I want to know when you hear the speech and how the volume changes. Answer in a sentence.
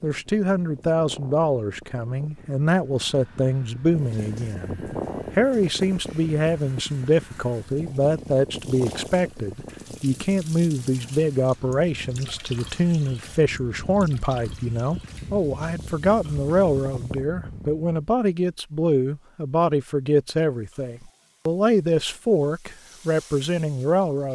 You can hear the speech from 0.0 to 24.2 s, at a steady volume.